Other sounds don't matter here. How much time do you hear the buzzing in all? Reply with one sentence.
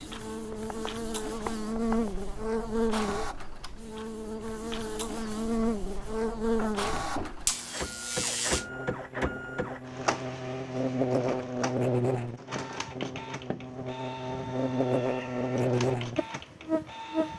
The buzzing can be heard for 17 seconds in total.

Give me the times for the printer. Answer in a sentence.
The printer can be heard from 0.0 to 17.3 s.